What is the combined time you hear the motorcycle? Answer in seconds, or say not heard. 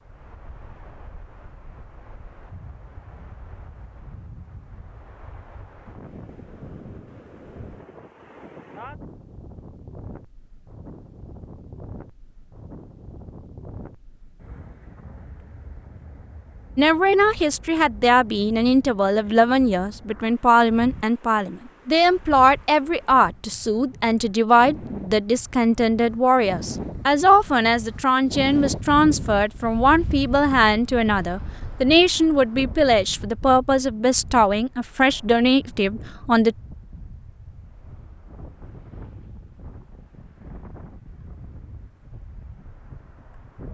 not heard.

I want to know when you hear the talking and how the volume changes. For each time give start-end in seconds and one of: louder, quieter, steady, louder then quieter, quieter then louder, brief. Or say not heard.
16.8-36.5 steady.